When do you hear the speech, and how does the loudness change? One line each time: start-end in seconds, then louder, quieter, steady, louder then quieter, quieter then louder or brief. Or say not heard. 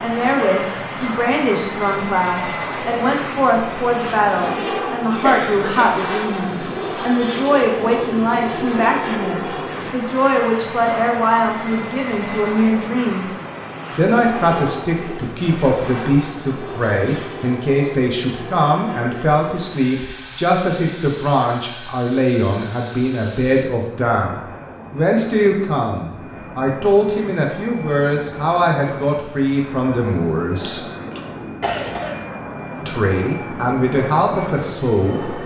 0.0-13.3 steady
13.9-30.8 steady
32.9-35.4 brief.